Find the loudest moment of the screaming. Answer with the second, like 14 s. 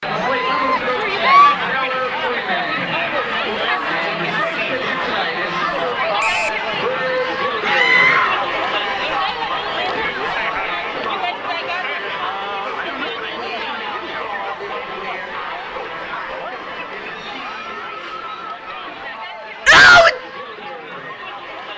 20 s.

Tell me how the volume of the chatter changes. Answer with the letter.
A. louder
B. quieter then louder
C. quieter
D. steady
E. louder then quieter
C.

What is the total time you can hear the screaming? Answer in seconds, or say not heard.
3 s.